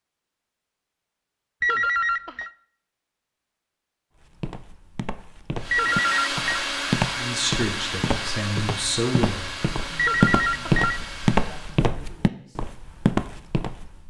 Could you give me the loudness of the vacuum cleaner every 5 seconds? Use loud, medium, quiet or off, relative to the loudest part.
off, loud, medium.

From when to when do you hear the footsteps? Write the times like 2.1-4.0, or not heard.
4.2-14.0.